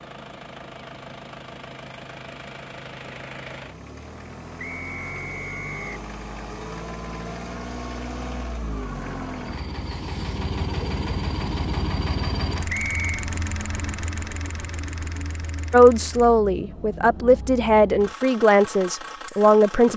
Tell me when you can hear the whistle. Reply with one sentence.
You can hear the whistle from 4.5 to 5.9 s and from 12.7 to 13.2 s.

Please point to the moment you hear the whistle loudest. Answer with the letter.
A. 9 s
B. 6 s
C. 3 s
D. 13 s
D.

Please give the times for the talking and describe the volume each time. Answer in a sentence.
You can hear the talking from 15.7 to 19.9 s, at a steady volume.